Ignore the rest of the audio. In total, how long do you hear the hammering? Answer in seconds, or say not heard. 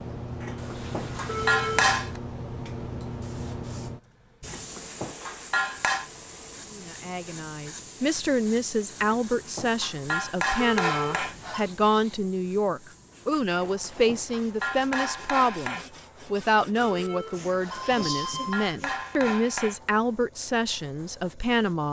10 s.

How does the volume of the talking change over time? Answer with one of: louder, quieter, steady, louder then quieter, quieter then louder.
steady.